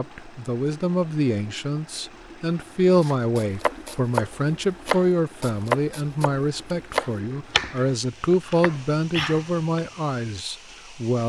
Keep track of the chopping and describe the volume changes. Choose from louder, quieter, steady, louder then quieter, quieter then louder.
quieter.